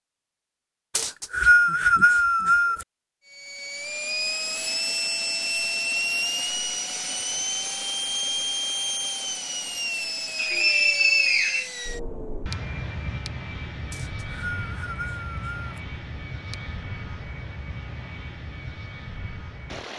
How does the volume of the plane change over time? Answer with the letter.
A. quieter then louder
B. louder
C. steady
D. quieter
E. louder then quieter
D.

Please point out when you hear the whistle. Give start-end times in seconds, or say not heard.
0.9-2.9, 10.3-11.7, 13.9-15.8.